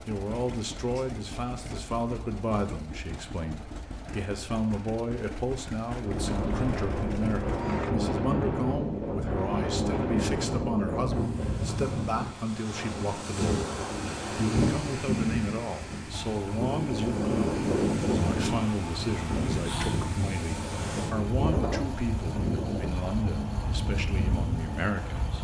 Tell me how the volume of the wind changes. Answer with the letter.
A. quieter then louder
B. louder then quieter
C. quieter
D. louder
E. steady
E.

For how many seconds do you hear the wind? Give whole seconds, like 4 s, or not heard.
19 s.